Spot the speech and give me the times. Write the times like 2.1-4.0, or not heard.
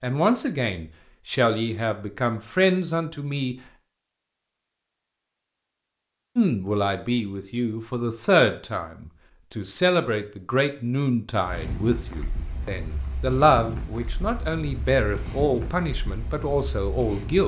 0.0-3.5, 6.3-17.4.